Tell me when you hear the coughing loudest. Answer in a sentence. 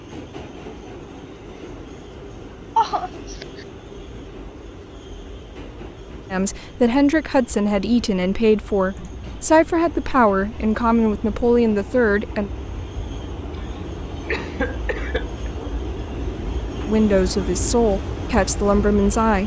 The loudest moment of the coughing is at 3 seconds.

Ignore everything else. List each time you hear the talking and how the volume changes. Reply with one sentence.
You can hear the talking from 6.3 to 12.5 s, at a steady volume; and briefly from 16.9 to 19.4 s.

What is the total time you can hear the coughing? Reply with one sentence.
You can hear the coughing for 4 seconds altogether.